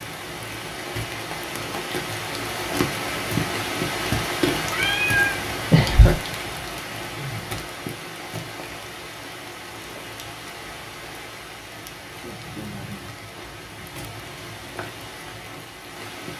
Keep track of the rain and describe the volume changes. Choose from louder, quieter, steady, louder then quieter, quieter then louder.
quieter.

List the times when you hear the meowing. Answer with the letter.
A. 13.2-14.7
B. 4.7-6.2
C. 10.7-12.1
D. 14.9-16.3
B.